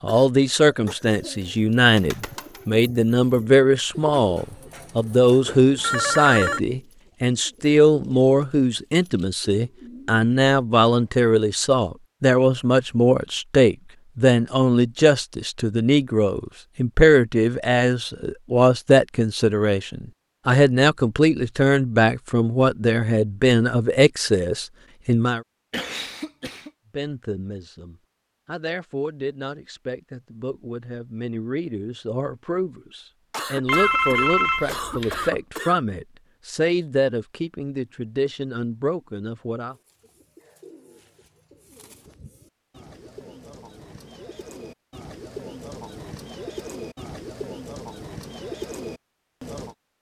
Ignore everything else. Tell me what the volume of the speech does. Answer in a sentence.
The volume of the speech goes down.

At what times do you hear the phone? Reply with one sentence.
The phone can be heard from 5.5 to 6.6 s and from 33.6 to 35.3 s.